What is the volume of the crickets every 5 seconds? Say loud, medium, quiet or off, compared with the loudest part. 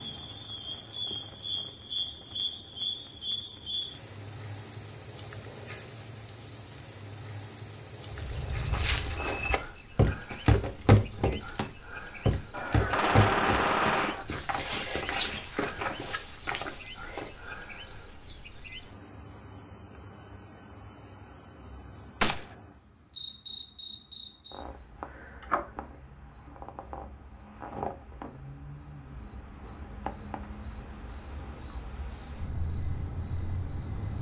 loud, loud, loud, loud, loud, medium, medium.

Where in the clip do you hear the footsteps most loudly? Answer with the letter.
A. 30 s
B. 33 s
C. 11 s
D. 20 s
C.